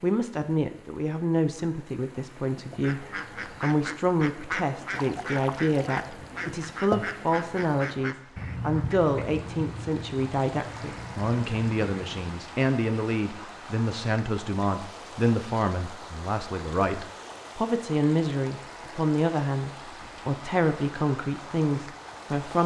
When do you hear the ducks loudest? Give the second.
7 s.